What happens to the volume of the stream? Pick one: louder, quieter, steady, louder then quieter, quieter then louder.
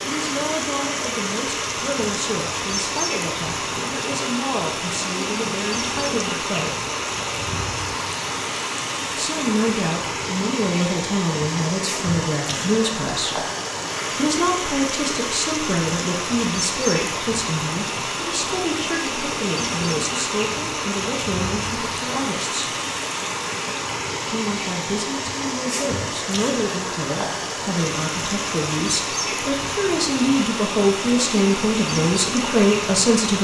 steady.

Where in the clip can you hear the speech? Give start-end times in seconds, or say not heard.
0.0-6.8, 9.2-13.4, 14.2-22.7, 24.2-33.3.